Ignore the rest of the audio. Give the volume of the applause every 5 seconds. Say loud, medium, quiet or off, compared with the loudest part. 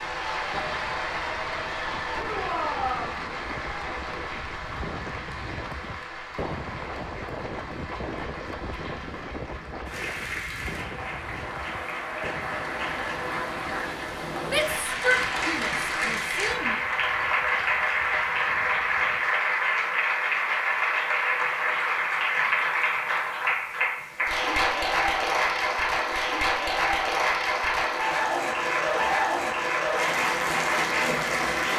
medium, quiet, medium, loud, loud, loud, loud.